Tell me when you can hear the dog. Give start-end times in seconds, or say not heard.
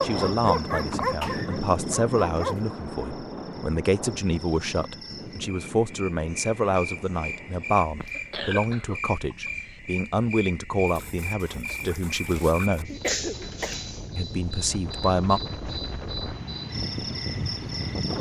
0.0-2.6.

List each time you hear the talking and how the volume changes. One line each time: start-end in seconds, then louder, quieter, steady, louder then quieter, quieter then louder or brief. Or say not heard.
0.0-12.9 steady
14.2-15.4 brief.